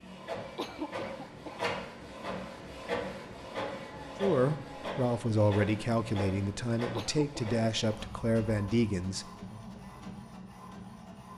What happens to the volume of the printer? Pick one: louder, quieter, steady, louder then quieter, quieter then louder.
quieter.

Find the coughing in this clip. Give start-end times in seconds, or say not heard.
0.6-1.7, 7.0-8.0.